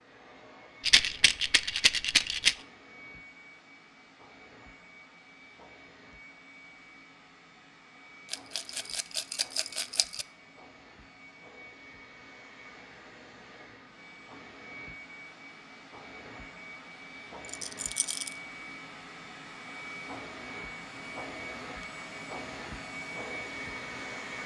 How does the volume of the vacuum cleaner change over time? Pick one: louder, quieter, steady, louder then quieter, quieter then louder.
louder.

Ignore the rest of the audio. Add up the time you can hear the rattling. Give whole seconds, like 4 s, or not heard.
5 s.